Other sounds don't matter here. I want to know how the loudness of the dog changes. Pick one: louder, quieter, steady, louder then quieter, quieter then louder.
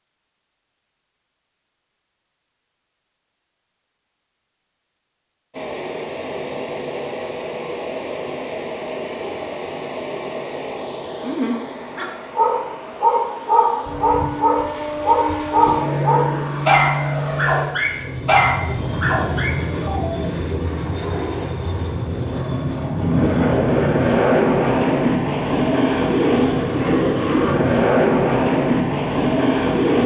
steady.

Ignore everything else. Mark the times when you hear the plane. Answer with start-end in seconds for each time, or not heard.
5.5-30.0.